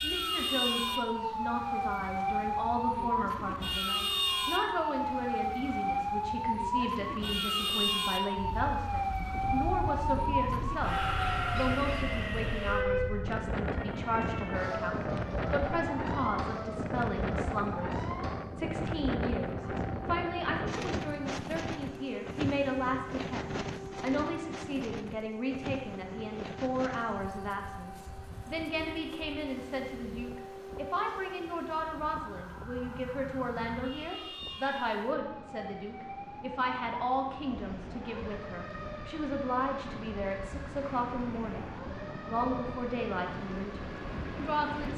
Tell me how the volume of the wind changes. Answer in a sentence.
The volume of the wind goes down, then up.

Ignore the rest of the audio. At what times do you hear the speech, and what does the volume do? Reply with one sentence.
You can hear the speech from 0.0 to 44.9 s, at a steady volume.